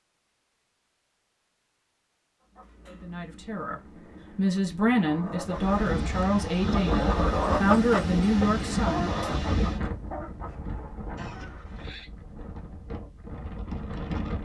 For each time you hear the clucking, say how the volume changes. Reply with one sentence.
You can hear the clucking from 2.4 to 11.8 s, getting louder then quieter.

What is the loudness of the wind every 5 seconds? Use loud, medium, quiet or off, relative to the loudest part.
off, loud, medium.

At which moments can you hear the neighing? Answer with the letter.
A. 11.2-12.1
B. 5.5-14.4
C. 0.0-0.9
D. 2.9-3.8
A.